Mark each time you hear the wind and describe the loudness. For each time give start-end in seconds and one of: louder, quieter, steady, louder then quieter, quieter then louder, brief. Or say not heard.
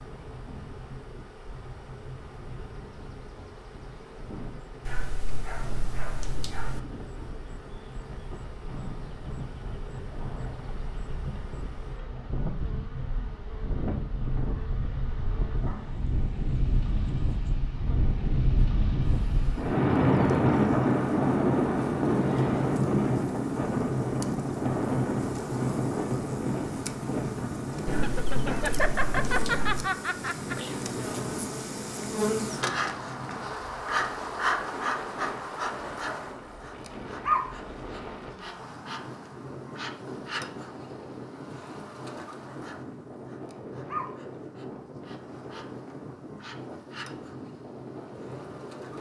0.0-48.9 louder then quieter.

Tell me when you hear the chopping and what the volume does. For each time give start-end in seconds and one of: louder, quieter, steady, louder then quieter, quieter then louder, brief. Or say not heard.
not heard.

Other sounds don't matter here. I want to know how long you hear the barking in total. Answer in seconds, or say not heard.
4 s.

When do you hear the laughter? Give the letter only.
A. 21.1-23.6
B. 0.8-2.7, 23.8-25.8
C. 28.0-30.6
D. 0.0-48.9
C.